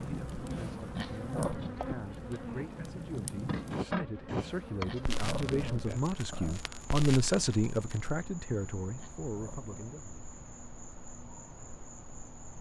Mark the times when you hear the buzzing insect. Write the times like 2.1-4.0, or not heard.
0.0-12.5.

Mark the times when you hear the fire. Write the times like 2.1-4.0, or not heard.
0.0-8.2.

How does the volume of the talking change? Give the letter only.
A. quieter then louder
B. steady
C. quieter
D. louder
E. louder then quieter
E.